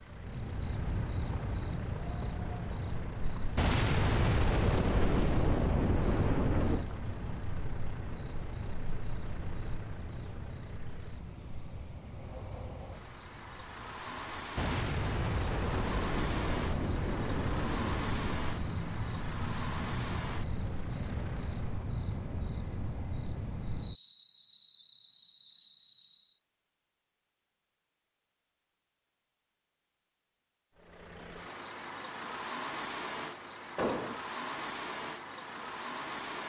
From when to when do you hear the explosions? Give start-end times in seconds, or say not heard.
3.5-6.8, 14.6-18.6, 33.8-34.2.